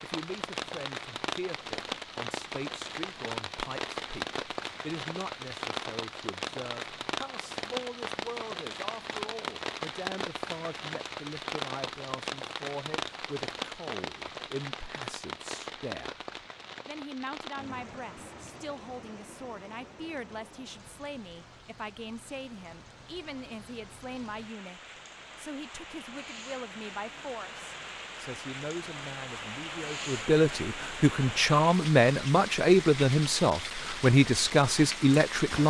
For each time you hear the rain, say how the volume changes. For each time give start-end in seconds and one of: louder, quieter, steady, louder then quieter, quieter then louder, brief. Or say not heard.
0.0-35.6 quieter then louder.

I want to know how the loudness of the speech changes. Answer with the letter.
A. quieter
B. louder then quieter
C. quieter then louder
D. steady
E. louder
E.